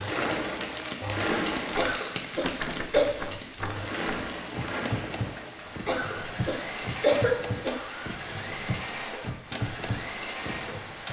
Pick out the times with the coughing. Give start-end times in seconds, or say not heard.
1.8-3.1, 5.8-7.8.